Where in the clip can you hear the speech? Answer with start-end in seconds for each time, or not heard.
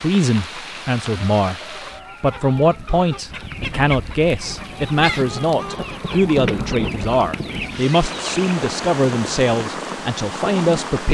0.0-11.0.